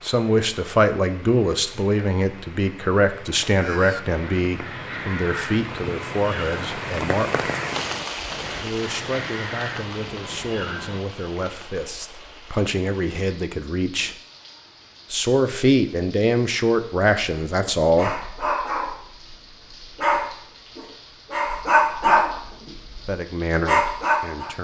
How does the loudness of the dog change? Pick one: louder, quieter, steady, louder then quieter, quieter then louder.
louder.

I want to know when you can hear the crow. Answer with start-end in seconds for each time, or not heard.
3.5-11.0.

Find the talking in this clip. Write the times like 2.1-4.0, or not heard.
0.0-7.5, 8.6-14.2, 15.1-18.2, 23.1-24.5.